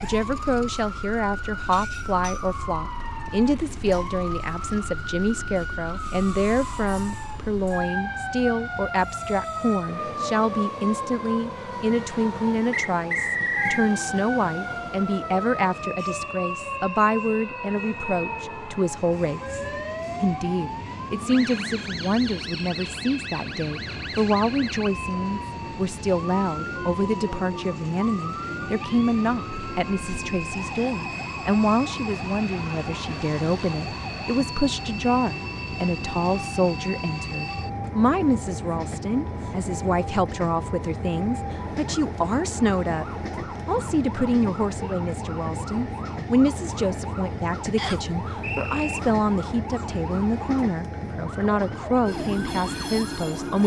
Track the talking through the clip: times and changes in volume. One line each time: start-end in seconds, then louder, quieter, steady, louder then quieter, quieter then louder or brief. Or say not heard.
0.0-43.0 steady
43.6-53.6 steady.